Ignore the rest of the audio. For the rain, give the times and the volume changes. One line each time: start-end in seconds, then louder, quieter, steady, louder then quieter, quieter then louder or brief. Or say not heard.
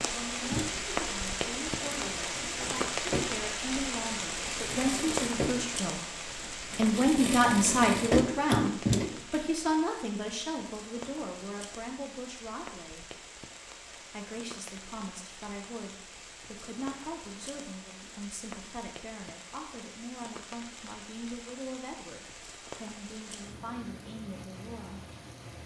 0.0-25.6 quieter.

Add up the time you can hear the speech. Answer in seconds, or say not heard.
24 s.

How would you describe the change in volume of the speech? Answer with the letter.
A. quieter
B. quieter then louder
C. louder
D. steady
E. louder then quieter
E.